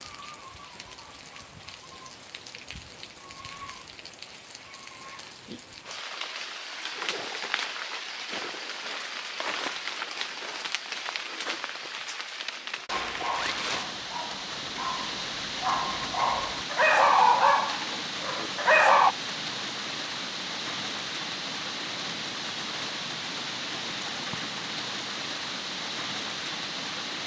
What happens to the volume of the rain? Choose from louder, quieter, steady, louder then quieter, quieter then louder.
louder.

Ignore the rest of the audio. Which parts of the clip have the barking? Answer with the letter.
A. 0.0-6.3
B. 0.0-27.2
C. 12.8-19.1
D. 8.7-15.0
C.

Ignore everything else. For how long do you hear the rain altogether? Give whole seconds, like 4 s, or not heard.
27 s.